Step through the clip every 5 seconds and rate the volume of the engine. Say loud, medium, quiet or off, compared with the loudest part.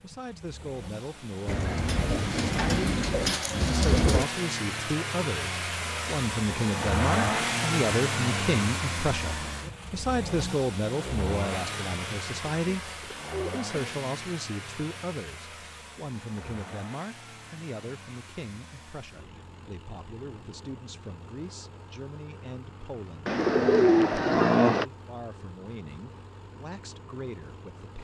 medium, loud, medium, quiet, quiet, quiet.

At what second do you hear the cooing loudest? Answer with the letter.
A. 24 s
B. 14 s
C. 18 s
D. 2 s
A.